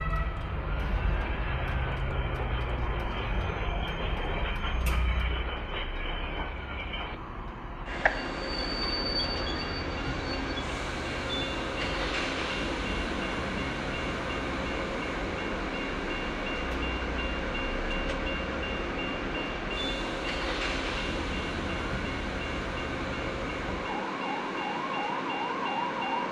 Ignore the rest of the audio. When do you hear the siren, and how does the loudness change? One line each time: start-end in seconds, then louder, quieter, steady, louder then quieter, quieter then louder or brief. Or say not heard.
0.0-26.2 quieter then louder.